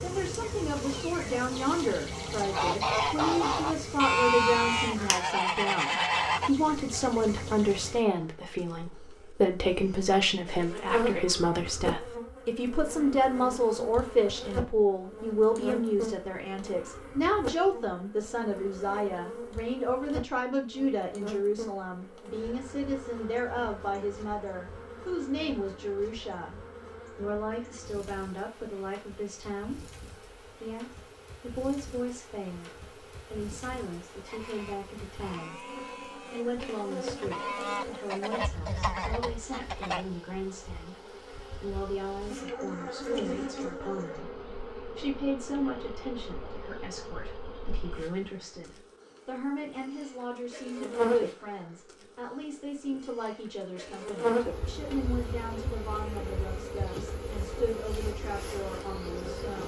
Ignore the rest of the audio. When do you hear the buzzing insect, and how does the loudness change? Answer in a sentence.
You can hear the buzzing insect from 0.0 to 59.6 s, getting quieter then louder.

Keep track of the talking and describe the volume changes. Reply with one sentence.
The loudness of the talking goes down.